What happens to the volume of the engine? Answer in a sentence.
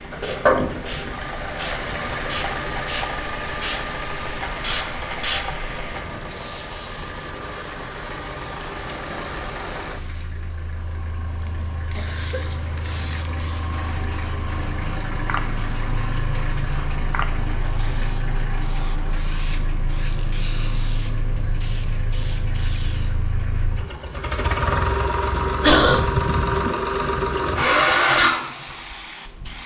The volume of the engine goes down, then up.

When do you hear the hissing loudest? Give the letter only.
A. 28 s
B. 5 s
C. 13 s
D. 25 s
B.